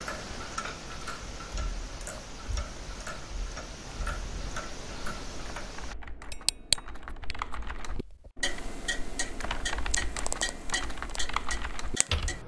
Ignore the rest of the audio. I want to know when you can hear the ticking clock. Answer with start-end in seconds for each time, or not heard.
0.0-12.4.